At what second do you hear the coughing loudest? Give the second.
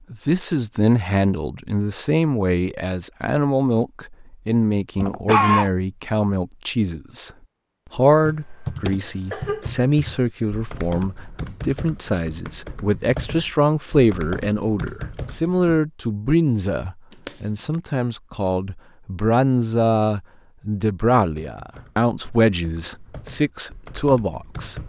5 s.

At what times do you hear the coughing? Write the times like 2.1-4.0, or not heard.
5.0-5.7, 9.1-9.8, 17.1-17.8.